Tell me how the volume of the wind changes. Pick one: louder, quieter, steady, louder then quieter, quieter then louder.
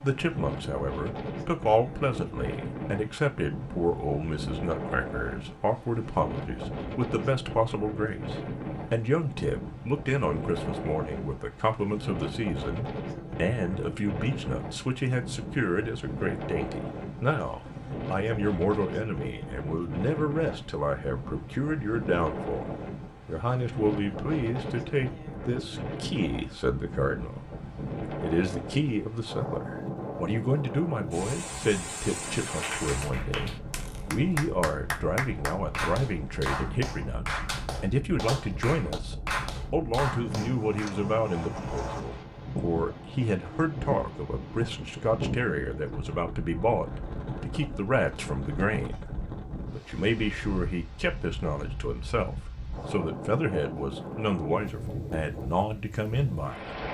steady.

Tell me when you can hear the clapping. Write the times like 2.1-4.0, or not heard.
32.4-41.0.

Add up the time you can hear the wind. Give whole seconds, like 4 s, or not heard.
57 s.